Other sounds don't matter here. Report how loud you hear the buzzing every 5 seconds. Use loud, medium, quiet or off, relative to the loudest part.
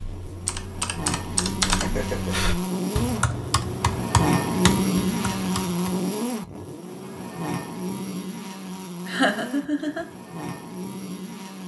loud, loud, medium.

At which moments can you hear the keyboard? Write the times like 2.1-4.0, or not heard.
0.0-6.0.